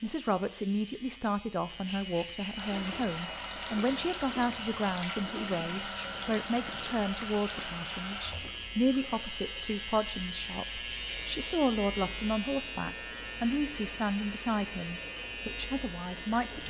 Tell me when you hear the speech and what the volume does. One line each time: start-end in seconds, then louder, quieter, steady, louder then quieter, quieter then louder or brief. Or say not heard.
0.0-16.6 steady.